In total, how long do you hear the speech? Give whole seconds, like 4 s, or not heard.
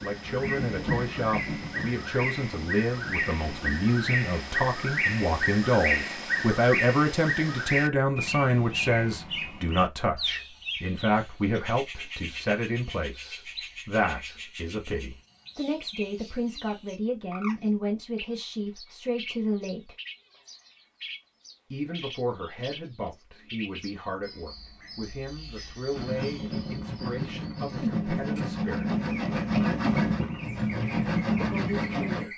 28 s.